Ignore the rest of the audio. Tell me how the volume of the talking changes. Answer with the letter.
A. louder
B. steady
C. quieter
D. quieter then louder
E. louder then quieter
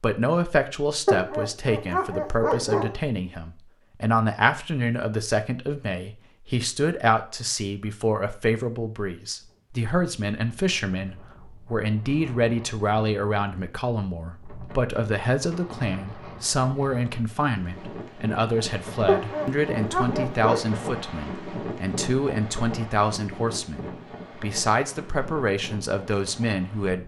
B.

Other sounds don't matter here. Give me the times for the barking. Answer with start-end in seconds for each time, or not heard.
1.1-3.0, 19.1-20.6.